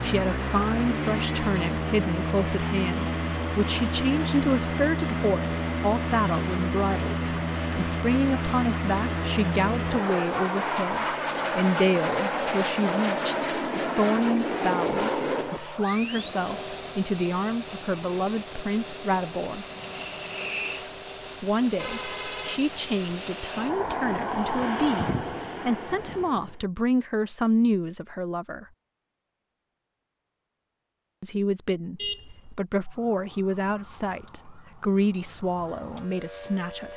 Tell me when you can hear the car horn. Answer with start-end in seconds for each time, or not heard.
1.0-1.8, 21.8-22.6, 31.9-32.6.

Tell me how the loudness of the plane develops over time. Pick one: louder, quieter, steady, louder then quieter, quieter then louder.
steady.